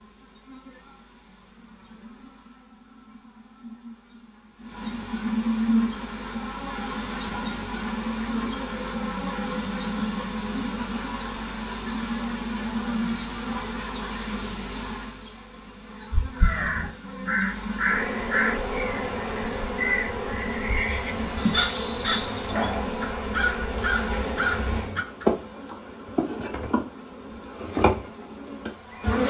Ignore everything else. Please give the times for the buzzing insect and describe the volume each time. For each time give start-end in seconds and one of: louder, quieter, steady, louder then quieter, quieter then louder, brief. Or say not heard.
0.0-29.2 steady.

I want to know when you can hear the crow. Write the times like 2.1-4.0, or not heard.
16.4-25.3.